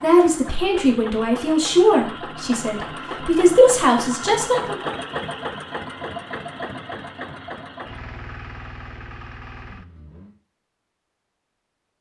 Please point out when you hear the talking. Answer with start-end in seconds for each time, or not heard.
0.0-4.8.